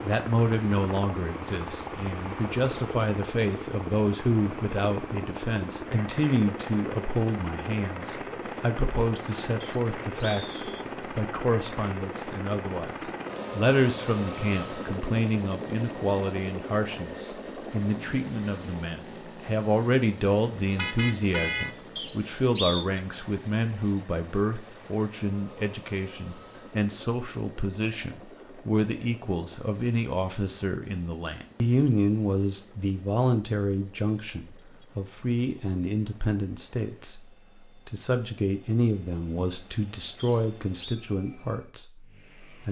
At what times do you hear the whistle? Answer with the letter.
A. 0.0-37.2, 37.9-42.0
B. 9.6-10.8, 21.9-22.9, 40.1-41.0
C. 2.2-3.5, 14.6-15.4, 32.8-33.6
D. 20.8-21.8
B.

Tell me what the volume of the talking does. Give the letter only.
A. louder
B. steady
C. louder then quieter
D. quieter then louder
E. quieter
B.